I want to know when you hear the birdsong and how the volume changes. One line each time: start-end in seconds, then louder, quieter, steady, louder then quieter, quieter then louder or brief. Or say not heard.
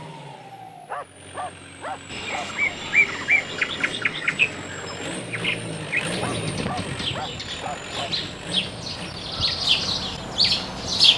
2.1-11.1 quieter then louder.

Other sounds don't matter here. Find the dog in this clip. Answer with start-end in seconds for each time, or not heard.
0.8-2.8, 6.2-8.2.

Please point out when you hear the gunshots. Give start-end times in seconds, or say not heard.
not heard.